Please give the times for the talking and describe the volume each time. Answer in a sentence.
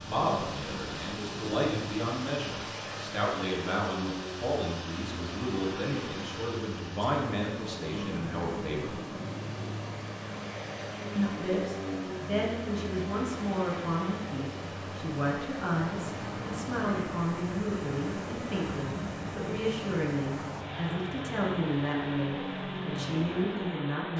You can hear the talking from 0.0 to 8.9 s, at a steady volume; and from 11.2 to 24.1 s, at a steady volume.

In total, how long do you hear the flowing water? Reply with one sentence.
You can hear the flowing water for 24 seconds altogether.